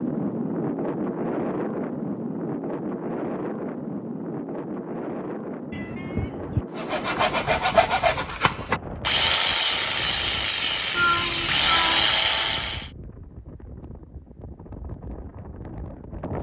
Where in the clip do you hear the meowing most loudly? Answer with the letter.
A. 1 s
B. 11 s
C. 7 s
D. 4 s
B.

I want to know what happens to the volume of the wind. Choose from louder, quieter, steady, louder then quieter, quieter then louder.
quieter.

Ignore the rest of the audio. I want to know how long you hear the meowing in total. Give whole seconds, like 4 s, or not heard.
2 s.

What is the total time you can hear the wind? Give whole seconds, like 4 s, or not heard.
16 s.